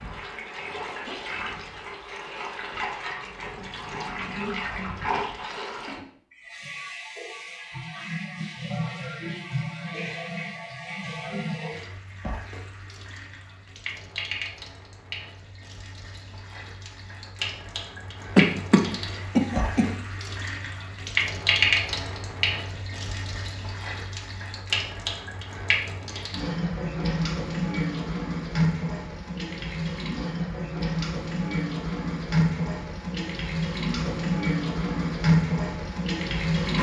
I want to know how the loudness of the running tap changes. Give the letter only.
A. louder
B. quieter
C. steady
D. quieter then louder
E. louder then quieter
A.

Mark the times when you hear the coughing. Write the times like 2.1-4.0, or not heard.
18.4-19.9.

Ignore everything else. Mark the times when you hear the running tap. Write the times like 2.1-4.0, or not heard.
0.0-36.7.